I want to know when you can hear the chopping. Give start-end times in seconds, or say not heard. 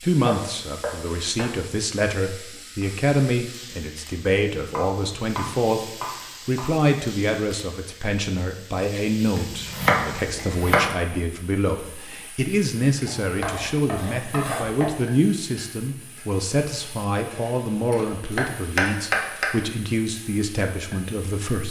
0.2-1.6, 4.7-6.7, 9.3-10.8, 13.1-14.9, 17.9-19.4.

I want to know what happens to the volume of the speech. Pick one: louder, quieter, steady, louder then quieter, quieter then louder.
steady.